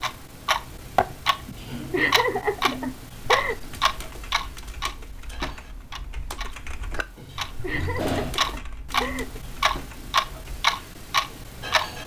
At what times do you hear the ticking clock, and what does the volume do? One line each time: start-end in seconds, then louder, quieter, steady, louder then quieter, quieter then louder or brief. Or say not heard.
0.0-12.0 quieter then louder.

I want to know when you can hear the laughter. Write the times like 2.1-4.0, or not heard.
1.4-3.5, 7.2-9.4.